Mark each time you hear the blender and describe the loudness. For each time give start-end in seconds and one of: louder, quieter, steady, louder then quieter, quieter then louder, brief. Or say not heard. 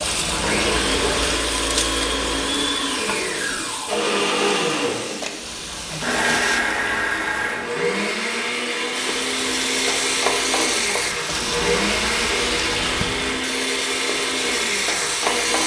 0.4-15.6 steady.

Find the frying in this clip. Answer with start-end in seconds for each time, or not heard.
0.0-6.6, 8.9-15.6.